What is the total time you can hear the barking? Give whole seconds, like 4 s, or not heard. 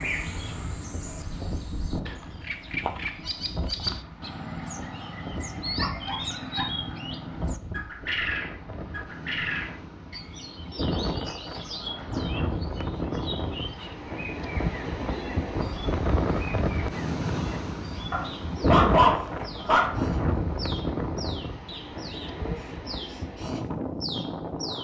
3 s.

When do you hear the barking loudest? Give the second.
19 s.